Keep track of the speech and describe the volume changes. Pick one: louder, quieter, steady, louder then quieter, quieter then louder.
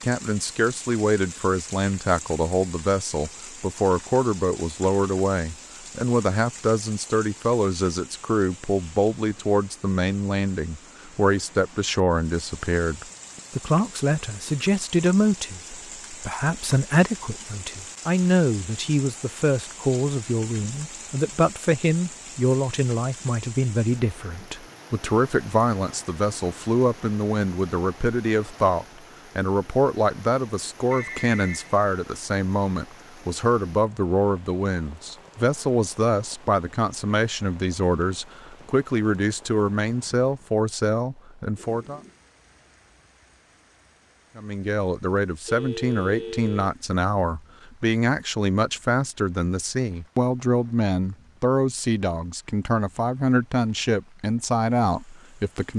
steady.